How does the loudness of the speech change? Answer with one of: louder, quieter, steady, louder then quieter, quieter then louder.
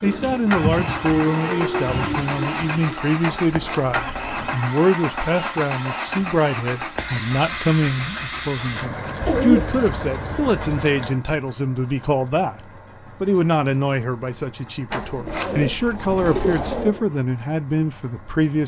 steady.